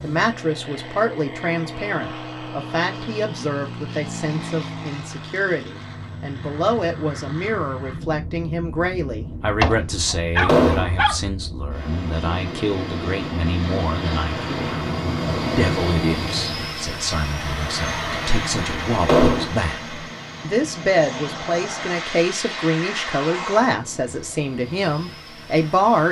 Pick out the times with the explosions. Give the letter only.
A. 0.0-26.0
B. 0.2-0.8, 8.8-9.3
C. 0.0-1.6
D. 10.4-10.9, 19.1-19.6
D.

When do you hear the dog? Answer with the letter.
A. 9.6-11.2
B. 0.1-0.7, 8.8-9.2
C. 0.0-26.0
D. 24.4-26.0
A.